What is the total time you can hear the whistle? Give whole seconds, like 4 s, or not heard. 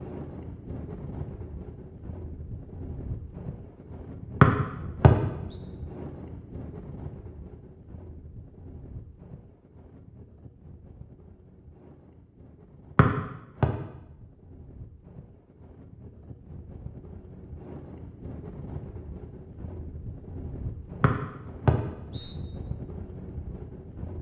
3 s.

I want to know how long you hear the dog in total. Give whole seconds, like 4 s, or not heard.
not heard.